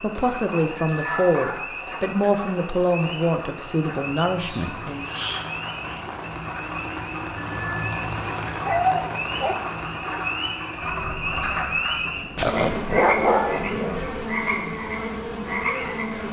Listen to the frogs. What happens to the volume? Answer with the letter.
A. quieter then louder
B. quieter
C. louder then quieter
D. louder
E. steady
D.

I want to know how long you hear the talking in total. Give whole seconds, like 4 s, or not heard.
5 s.